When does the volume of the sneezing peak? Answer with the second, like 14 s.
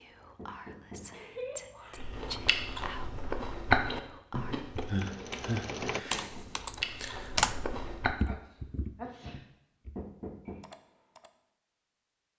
5 s.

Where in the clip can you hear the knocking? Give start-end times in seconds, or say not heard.
0.3-2.1, 5.9-6.5, 9.9-10.6.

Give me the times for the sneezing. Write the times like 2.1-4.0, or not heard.
1.1-2.1, 4.8-6.2, 8.2-9.4.